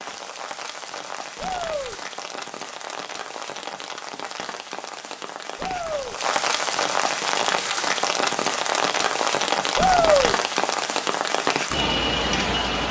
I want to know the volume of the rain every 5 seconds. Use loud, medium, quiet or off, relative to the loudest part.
medium, loud, loud.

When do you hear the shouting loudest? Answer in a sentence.
The loudest moment of the shouting is at 10 seconds.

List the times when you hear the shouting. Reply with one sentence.
You can hear the shouting from 1.4 to 1.9 s, from 5.5 to 6.2 s and from 9.8 to 10.3 s.